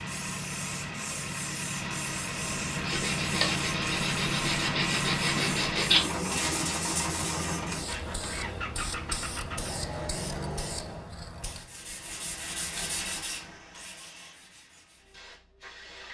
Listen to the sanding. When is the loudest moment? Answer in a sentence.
The volume of the sanding peaks at 6 seconds.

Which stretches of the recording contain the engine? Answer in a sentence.
You can hear the engine from 0.0 to 11.1 s.